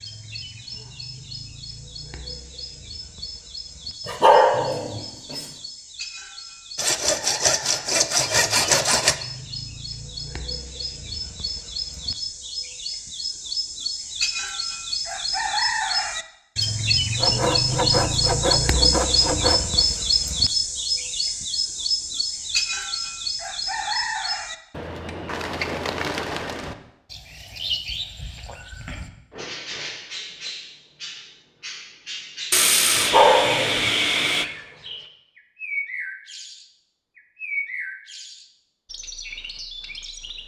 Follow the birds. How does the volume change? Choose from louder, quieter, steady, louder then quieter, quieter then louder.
louder then quieter.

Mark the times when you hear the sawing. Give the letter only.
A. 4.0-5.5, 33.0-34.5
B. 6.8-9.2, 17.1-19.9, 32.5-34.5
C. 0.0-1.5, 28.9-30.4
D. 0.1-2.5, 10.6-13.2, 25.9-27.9
B.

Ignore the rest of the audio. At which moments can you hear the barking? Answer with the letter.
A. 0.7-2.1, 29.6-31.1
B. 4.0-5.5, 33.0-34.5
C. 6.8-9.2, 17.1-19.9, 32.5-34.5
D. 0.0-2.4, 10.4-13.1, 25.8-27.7
B.